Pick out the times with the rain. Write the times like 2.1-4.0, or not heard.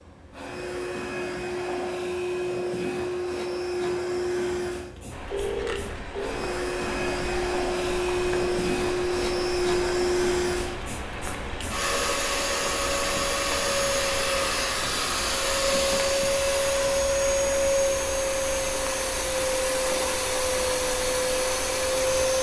5.1-22.3.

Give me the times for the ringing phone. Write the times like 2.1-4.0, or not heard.
5.3-6.4.